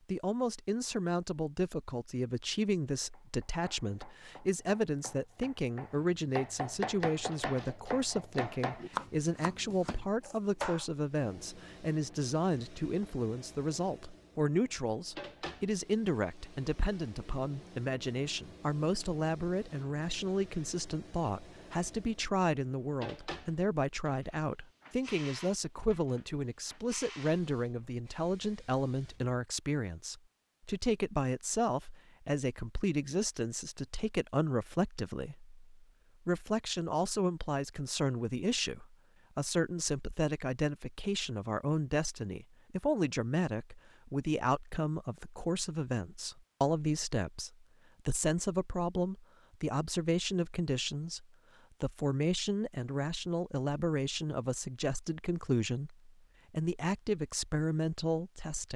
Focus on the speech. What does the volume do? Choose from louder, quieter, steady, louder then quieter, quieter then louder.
steady.